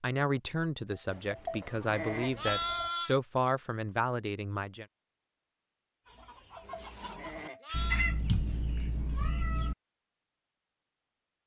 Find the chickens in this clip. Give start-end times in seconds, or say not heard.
6.0-9.7.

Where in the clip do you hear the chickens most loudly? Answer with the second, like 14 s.
8 s.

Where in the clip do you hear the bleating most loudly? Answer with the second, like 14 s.
3 s.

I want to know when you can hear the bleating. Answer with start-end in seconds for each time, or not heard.
0.9-3.1, 6.2-8.1.